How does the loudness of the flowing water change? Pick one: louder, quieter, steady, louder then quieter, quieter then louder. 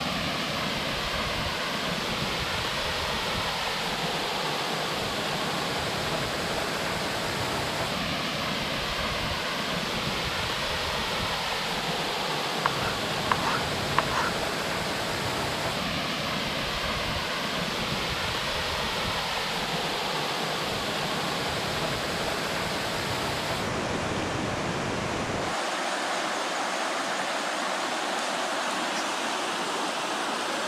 steady.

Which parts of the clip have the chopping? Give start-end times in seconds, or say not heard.
12.6-14.3.